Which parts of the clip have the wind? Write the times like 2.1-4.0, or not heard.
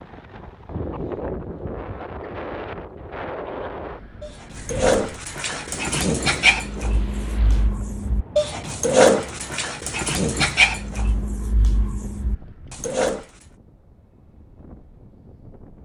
0.0-15.8.